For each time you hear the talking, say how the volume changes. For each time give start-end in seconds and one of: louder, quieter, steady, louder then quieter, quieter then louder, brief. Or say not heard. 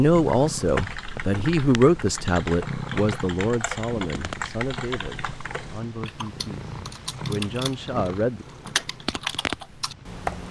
0.0-8.4 quieter then louder.